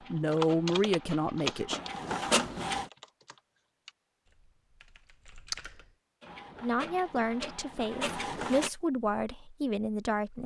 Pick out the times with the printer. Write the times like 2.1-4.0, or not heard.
0.0-2.9, 6.2-8.7.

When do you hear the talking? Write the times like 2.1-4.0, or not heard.
0.1-1.8, 6.6-10.4.